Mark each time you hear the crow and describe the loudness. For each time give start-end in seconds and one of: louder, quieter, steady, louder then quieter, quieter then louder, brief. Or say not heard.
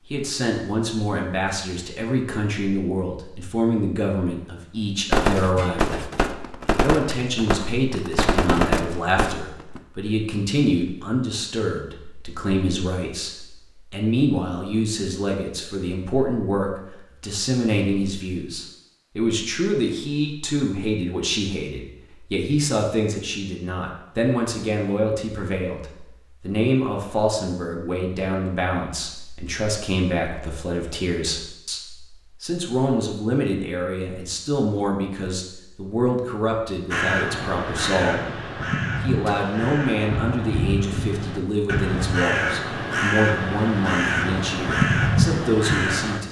36.9-46.2 louder.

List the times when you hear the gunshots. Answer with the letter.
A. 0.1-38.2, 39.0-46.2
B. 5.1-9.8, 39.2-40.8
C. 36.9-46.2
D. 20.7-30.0
B.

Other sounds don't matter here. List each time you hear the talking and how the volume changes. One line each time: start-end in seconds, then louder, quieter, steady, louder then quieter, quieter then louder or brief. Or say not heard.
0.1-38.2 steady
39.0-46.2 steady.